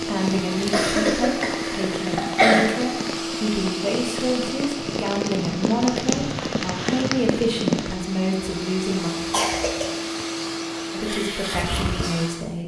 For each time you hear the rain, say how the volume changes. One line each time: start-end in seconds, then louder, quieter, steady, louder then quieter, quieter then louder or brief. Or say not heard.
0.0-8.0 louder.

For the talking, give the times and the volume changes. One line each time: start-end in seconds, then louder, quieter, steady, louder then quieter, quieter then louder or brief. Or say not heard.
0.1-9.1 steady
10.9-12.6 brief.